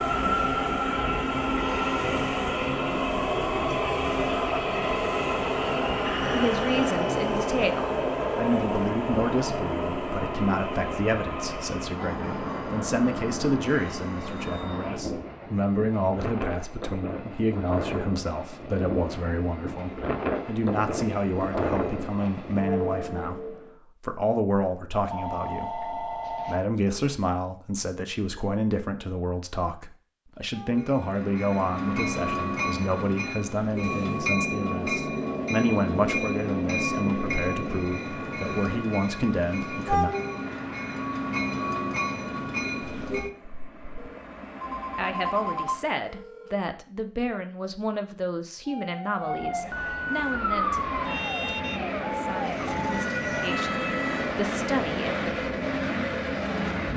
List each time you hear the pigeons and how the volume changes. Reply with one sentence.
You can't hear the pigeons here.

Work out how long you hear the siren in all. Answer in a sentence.
The siren can be heard for 6 seconds in total.